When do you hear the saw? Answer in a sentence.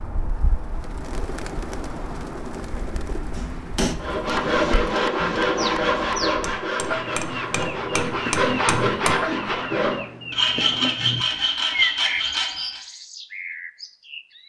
The saw can be heard from 3.9 to 12.8 s.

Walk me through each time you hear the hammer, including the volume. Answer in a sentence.
The hammer can be heard from 3.3 to 9.2 s, getting quieter then louder.